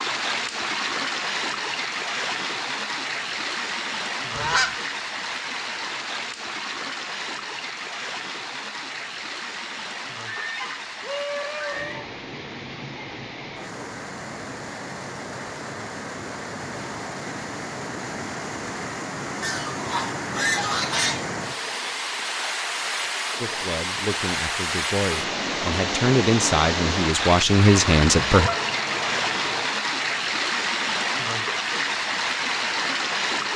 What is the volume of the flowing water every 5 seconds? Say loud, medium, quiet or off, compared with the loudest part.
loud, medium, medium, medium, loud, loud, loud.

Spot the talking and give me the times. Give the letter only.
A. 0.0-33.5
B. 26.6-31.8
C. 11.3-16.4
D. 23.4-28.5
D.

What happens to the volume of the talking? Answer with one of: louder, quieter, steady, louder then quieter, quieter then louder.
louder.